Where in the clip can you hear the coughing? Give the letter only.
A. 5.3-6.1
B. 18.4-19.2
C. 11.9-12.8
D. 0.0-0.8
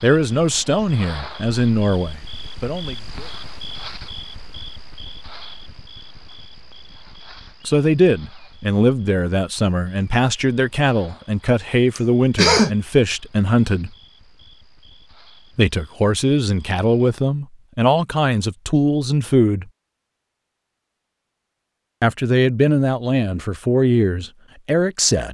C.